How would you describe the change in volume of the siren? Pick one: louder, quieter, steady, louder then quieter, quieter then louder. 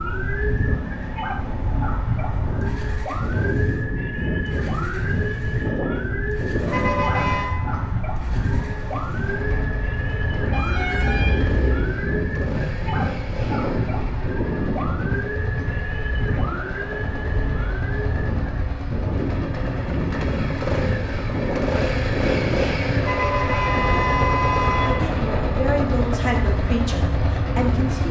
steady.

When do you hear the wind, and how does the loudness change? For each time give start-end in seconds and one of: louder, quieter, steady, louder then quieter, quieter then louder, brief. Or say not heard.
0.0-28.0 steady.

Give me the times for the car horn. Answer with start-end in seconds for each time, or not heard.
6.6-7.5, 10.5-11.9, 22.9-24.9.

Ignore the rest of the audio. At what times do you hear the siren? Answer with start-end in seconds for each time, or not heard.
0.0-18.4.